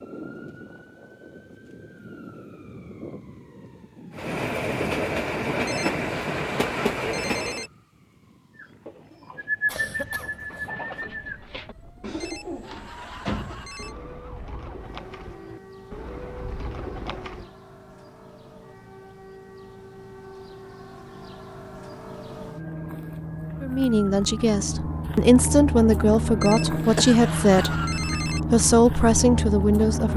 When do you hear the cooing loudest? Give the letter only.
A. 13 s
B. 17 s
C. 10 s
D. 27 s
C.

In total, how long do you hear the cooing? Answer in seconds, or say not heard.
9 s.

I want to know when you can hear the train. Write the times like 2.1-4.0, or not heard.
4.2-7.7.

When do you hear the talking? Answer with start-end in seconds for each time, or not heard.
23.6-30.1.